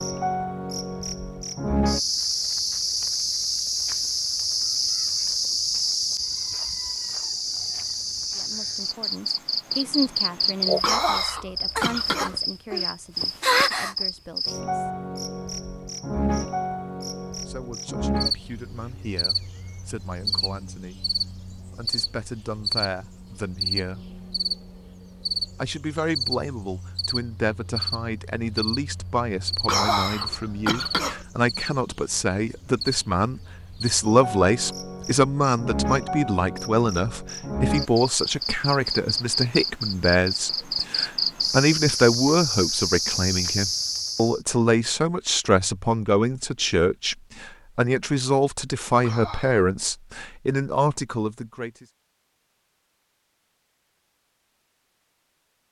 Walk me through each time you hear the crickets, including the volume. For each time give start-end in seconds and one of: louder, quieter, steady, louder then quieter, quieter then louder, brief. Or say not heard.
0.0-44.4 quieter then louder.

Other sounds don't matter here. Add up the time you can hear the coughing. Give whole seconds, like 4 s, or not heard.
4 s.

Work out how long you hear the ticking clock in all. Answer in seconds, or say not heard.
not heard.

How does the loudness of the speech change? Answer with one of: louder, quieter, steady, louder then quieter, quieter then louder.
louder.